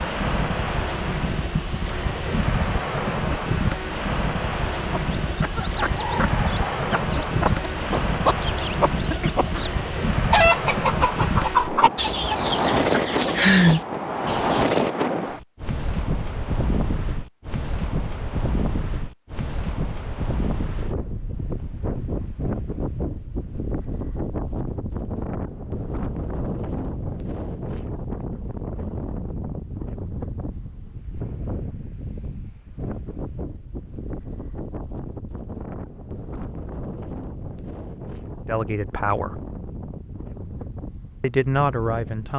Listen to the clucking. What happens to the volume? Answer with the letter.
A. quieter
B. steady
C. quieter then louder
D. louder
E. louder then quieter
D.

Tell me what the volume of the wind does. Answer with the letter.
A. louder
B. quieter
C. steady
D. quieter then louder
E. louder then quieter
B.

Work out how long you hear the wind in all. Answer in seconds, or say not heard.
42 s.